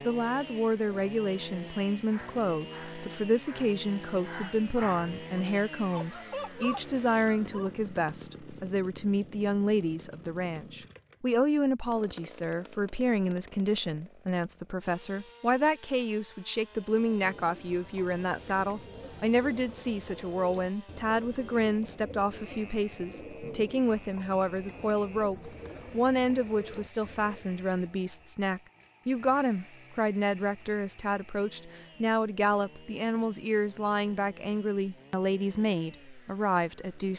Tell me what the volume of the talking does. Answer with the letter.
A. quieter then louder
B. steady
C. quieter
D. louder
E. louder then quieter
B.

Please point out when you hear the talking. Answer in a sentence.
The talking can be heard from 0.0 to 37.1 s.